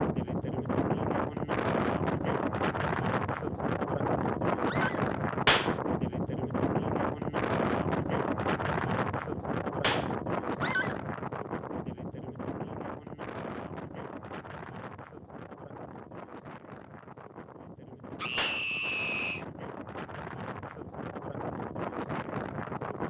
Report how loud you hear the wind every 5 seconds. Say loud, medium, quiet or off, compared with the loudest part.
loud, loud, medium, quiet, medium.